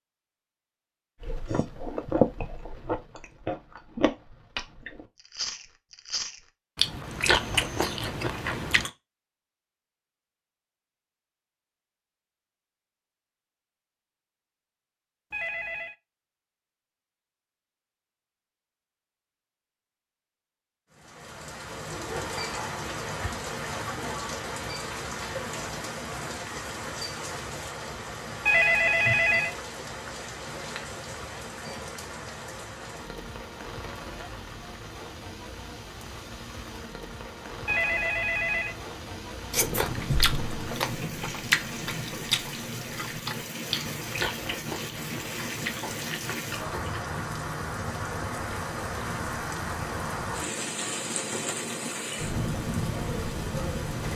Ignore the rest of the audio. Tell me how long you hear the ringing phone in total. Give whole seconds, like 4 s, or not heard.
3 s.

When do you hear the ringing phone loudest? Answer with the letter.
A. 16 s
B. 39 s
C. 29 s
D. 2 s
C.